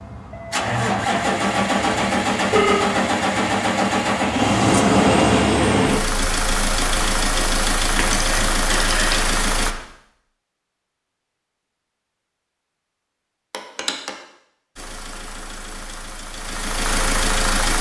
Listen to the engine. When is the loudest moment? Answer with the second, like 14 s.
5 s.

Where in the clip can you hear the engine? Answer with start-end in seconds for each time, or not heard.
0.0-9.8, 14.8-17.7.